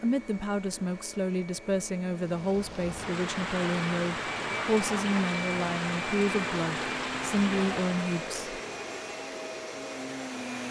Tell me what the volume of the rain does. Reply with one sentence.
The loudness of the rain goes down.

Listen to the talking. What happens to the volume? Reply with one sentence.
The volume of the talking stays about the same.